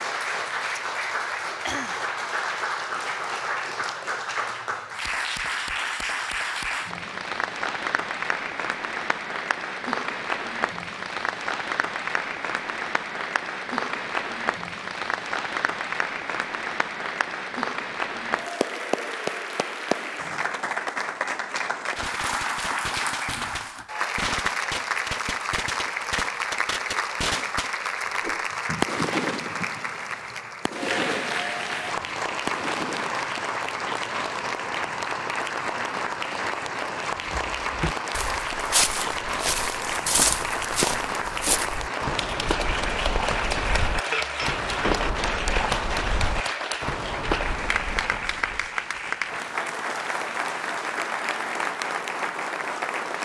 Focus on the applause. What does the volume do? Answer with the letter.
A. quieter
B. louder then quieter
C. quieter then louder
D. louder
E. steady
E.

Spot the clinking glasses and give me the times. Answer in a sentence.
You can hear the clinking glasses from 44.1 to 45.2 s.